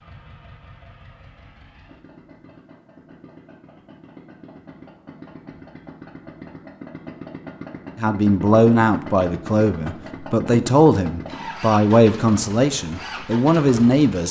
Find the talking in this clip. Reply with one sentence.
The talking can be heard from 8.0 to 14.2 s.